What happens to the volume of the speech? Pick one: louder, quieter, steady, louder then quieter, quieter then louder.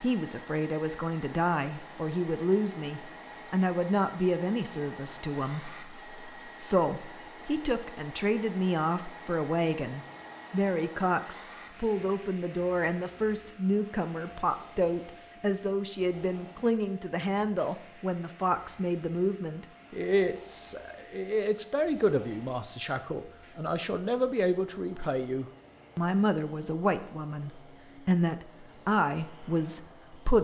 steady.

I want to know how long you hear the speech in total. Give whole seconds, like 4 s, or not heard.
30 s.